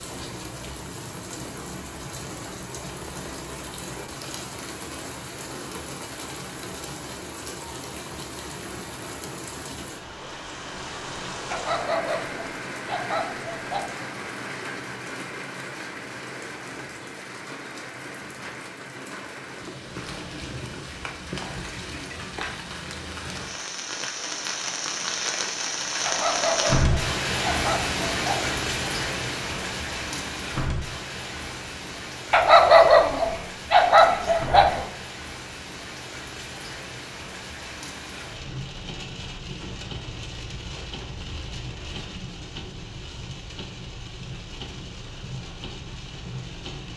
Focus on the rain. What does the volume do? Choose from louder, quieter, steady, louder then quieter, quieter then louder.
louder then quieter.